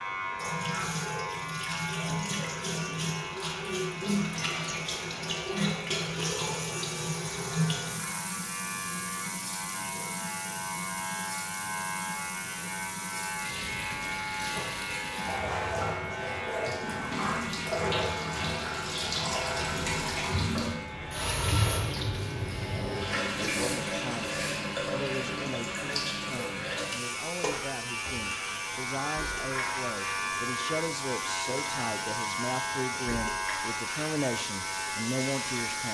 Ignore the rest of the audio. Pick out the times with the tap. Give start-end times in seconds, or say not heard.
0.1-35.8.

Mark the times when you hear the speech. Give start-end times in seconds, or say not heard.
23.4-35.8.